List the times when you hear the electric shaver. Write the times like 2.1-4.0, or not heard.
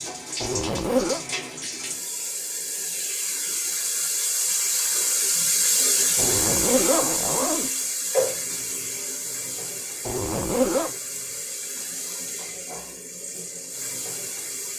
not heard.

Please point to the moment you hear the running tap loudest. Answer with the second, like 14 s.
6 s.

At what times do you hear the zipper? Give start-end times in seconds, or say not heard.
0.4-1.2, 6.2-7.7, 10.1-10.9.